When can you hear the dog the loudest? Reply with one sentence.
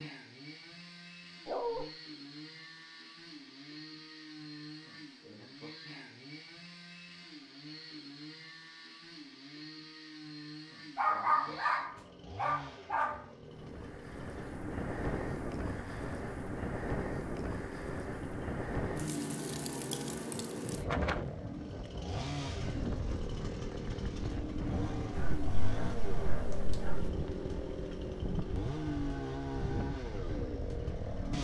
The volume of the dog peaks at 11 seconds.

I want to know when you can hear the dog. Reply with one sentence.
You can hear the dog from 1.4 to 1.9 s, from 10.9 to 13.2 s and from 25.1 to 27.1 s.